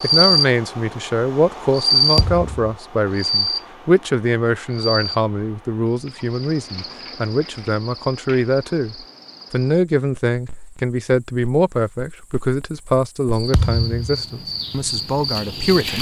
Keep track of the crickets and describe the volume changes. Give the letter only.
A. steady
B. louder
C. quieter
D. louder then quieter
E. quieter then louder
E.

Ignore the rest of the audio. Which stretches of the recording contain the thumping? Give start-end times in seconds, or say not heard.
2.1-2.7, 13.5-14.2.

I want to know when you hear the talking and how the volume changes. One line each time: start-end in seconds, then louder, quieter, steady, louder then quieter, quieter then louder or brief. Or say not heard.
0.0-15.9 steady.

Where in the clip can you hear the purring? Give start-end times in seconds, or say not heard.
not heard.